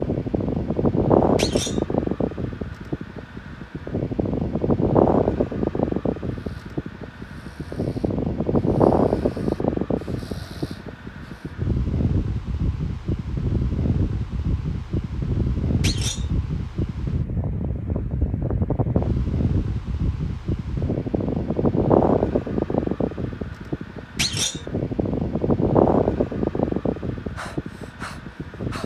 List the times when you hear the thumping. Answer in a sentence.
You can hear the thumping from 1.4 to 1.8 s, from 15.8 to 16.2 s and from 24.1 to 24.6 s.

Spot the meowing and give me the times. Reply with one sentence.
You can't hear the meowing here.